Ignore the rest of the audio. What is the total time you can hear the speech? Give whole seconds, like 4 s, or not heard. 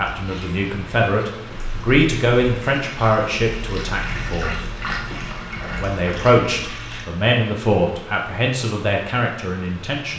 9 s.